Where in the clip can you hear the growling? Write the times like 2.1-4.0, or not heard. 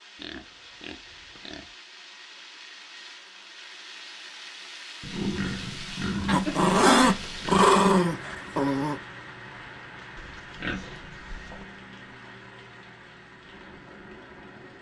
6.2-9.0.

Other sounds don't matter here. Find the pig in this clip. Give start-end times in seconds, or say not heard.
0.1-1.7, 5.0-7.7, 10.2-11.7.